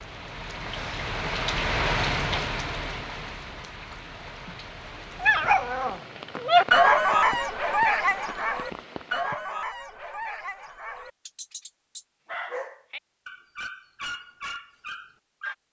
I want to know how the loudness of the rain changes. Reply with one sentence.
The volume of the rain goes down.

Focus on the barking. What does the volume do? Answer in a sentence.
The loudness of the barking goes down.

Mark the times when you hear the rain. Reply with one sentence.
You can hear the rain from 0.0 to 9.4 s.